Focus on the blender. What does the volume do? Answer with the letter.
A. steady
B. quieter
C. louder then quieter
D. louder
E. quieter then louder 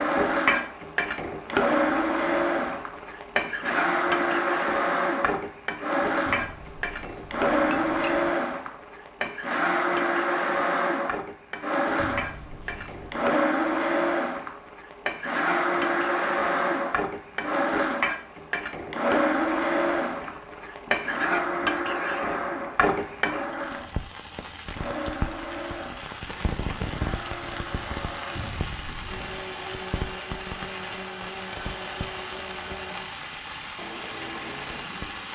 B.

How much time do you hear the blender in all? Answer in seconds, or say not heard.
35 s.